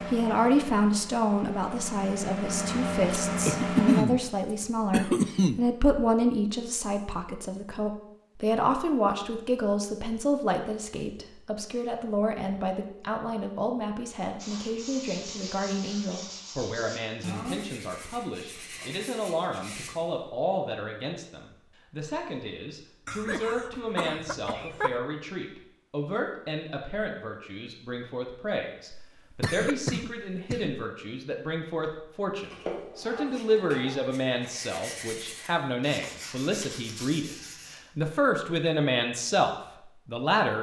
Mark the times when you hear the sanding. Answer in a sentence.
The sanding can be heard from 14.3 to 20.1 s and from 32.4 to 37.8 s.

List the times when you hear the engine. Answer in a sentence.
You can hear the engine from 0.0 to 4.0 s.